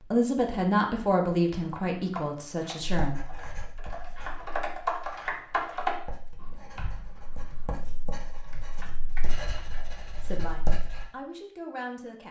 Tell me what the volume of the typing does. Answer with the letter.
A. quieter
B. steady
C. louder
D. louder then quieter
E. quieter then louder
D.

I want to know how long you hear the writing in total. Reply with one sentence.
You can hear the writing for 8 seconds altogether.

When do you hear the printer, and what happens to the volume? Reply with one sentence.
The printer can't be heard in this clip.